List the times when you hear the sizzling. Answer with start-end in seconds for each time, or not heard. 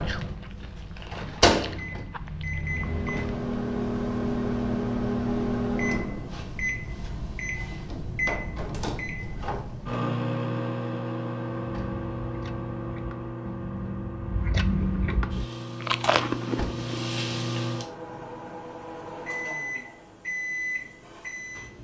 15.3-17.9.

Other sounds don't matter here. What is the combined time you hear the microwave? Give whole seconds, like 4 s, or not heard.
22 s.